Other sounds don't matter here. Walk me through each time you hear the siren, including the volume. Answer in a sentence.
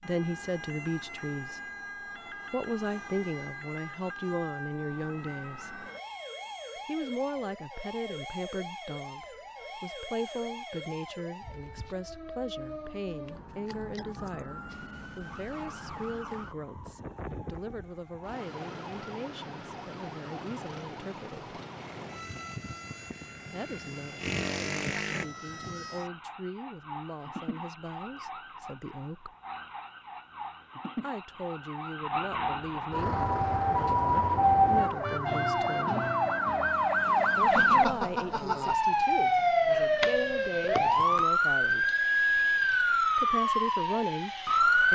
You can hear the siren from 0.0 to 44.9 s, getting louder.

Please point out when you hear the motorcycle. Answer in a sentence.
You can hear the motorcycle from 21.8 to 25.2 s.